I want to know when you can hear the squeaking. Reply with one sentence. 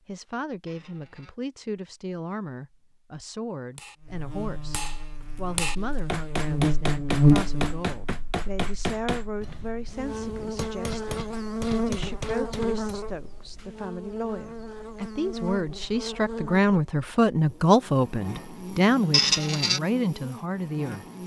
You can hear the squeaking from 0.7 to 1.4 s and from 19.1 to 19.8 s.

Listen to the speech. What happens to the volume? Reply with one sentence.
The loudness of the speech goes up.